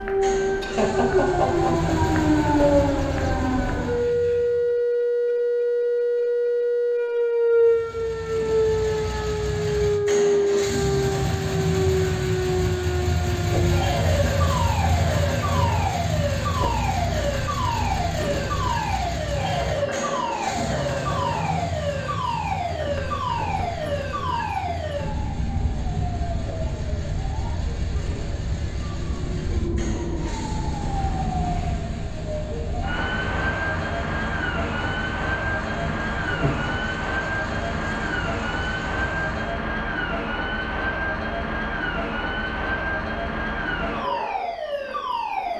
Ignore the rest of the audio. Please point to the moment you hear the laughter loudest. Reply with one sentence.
The loudest moment of the laughter is at 1 second.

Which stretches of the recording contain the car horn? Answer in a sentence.
You can't hear the car horn here.